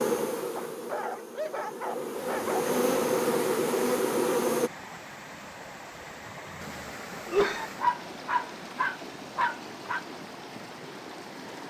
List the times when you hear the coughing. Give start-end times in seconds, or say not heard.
6.5-7.7.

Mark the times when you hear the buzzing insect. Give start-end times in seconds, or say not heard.
0.0-4.7.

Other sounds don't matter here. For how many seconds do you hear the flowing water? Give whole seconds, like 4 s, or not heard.
9 s.